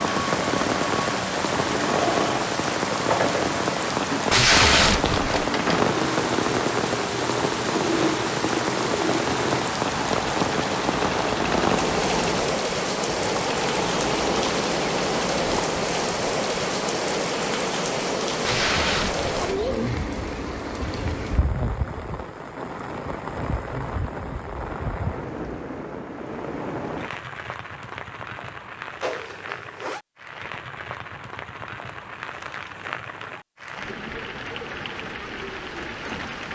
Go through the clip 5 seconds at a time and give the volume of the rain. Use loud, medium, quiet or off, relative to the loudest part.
loud, loud, loud, loud, medium, medium, medium, medium.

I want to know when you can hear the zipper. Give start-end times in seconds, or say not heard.
29.0-30.0.